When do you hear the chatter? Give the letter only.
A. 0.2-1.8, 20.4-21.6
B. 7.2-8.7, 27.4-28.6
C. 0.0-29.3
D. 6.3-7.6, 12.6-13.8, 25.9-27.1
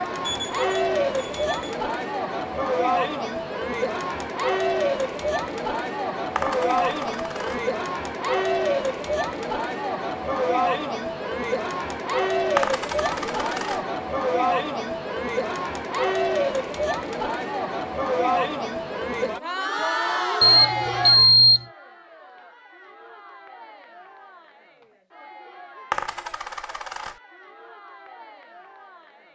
C.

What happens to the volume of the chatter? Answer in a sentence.
The volume of the chatter goes down.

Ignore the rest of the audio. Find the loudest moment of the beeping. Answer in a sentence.
The volume of the beeping peaks at 21 seconds.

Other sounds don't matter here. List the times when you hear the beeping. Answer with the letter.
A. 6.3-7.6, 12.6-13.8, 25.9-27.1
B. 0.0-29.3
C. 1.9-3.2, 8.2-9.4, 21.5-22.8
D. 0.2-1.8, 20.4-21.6
D.